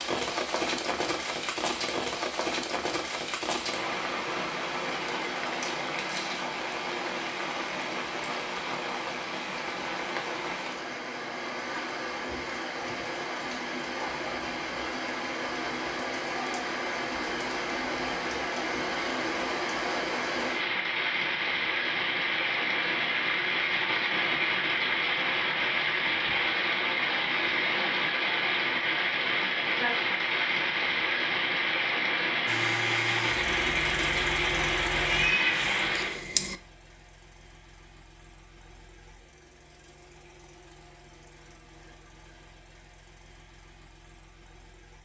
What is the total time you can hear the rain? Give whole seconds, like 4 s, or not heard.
36 s.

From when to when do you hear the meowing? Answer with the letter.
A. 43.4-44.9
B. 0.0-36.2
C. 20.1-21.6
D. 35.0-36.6
D.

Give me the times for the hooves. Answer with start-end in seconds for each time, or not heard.
not heard.